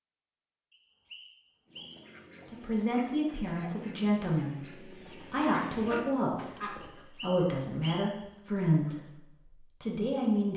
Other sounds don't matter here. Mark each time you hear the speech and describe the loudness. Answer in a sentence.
The speech can be heard from 2.5 to 10.5 s, at a steady volume.